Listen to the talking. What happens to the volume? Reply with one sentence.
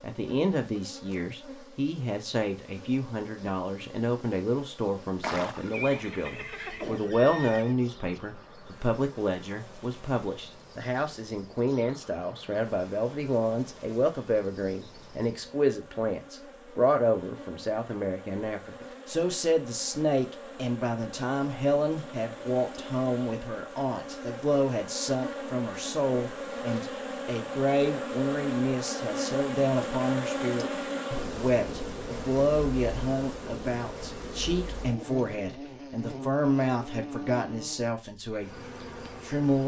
The loudness of the talking stays about the same.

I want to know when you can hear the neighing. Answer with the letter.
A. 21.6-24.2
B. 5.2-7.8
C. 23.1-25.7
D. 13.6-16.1
B.